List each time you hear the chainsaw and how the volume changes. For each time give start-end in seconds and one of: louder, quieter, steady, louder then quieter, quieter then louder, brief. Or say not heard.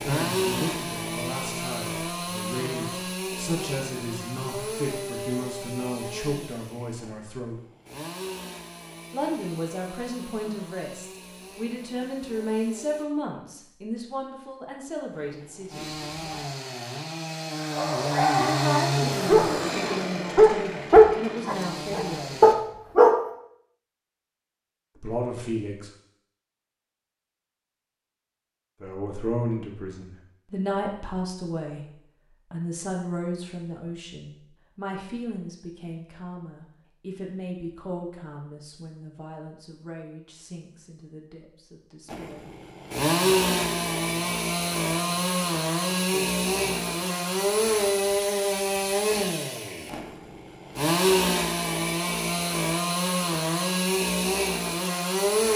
0.0-13.1 quieter
15.1-22.6 louder then quieter
42.0-55.5 steady.